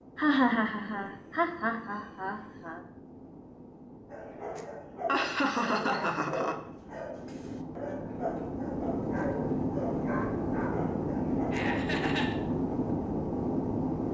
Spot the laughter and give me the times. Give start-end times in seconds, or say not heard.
0.1-2.8, 5.0-6.5, 11.5-12.3.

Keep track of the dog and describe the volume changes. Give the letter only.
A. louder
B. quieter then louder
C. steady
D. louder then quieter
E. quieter
C.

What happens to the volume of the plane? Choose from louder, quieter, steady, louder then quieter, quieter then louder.
louder.